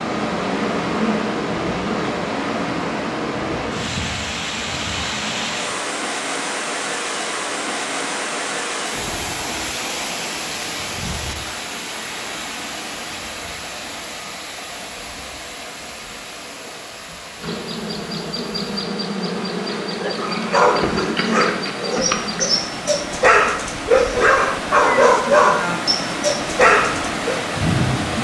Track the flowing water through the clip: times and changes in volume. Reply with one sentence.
You can hear the flowing water from 0.0 to 28.2 s, getting quieter then louder.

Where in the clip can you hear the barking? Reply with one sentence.
You can hear the barking from 20.0 to 27.4 s.